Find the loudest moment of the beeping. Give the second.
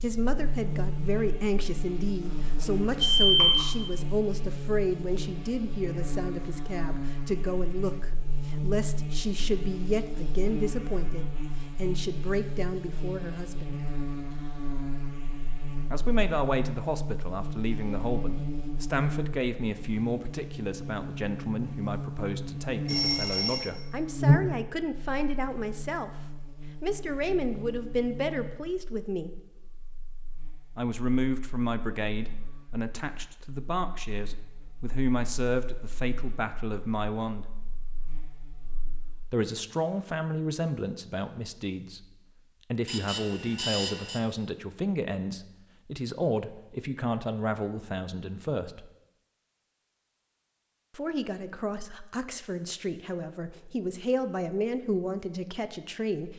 3 s.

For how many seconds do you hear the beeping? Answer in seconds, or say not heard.
4 s.